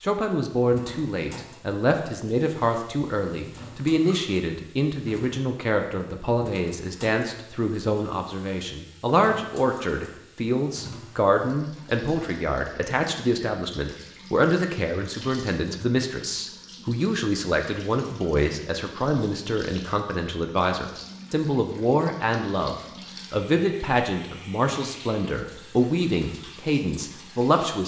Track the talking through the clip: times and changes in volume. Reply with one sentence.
You can hear the talking from 0.0 to 27.8 s, at a steady volume.